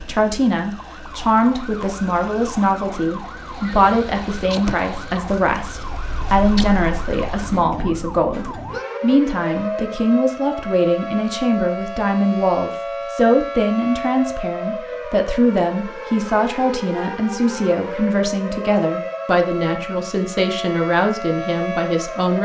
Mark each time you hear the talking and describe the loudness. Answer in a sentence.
You can hear the talking from 0.0 to 22.4 s, at a steady volume.